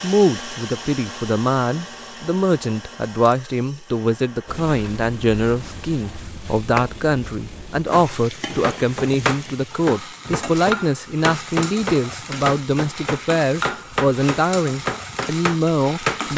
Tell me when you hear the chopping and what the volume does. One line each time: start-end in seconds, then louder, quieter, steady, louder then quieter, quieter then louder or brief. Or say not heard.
7.9-16.3 steady.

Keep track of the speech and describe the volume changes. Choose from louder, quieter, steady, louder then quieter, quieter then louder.
steady.